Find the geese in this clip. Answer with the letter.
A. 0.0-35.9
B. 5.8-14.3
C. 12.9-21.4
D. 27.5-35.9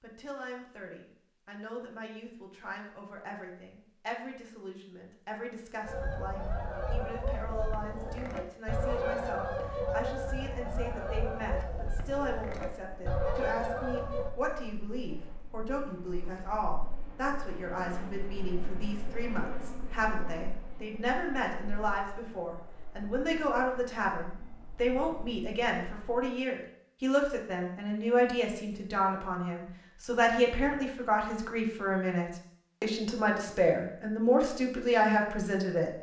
B.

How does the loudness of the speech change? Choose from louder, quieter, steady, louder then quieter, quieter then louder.
louder.